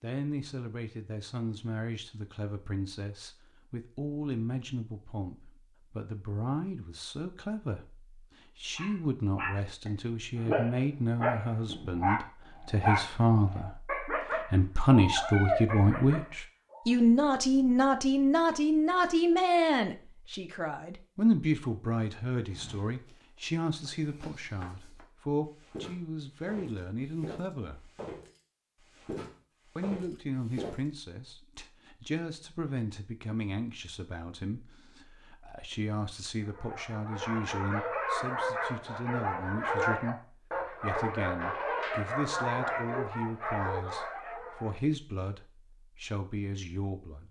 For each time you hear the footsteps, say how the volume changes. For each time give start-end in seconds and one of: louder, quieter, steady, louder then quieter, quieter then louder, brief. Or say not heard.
22.4-30.8 louder.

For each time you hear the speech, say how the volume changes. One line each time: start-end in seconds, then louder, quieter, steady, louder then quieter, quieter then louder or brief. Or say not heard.
0.0-27.9 louder then quieter
29.8-47.2 steady.